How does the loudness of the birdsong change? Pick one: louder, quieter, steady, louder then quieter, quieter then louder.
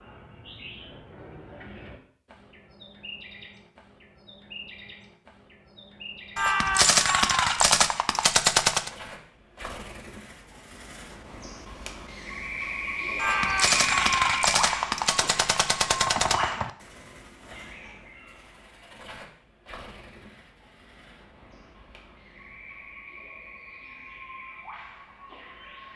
louder then quieter.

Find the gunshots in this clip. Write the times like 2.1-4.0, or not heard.
6.3-8.9, 13.2-16.7.